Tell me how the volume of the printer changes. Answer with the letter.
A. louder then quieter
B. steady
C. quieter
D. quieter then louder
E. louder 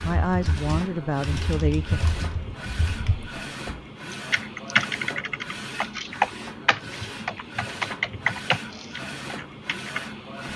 B.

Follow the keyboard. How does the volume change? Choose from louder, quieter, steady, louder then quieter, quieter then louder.
louder.